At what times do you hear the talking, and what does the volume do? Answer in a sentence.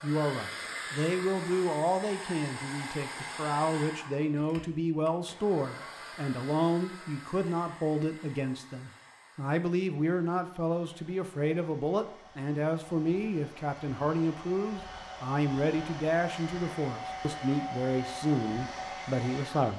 The talking can be heard from 0.0 to 19.7 s, at a steady volume.